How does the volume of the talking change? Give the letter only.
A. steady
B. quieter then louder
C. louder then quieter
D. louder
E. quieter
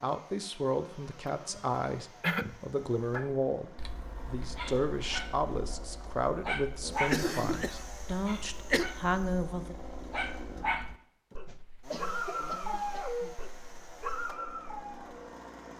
A.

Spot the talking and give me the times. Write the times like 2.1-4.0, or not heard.
0.0-9.8.